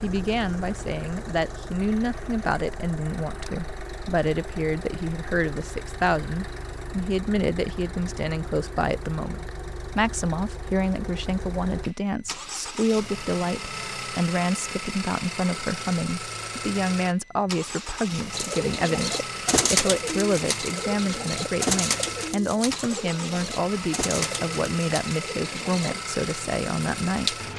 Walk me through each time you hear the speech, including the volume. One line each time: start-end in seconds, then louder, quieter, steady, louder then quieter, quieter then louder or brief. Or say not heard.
0.0-27.4 steady.